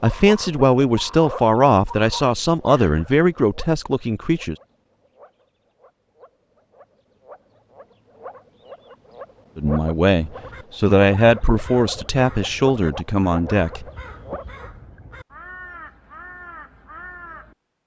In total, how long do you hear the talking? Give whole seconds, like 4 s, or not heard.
9 s.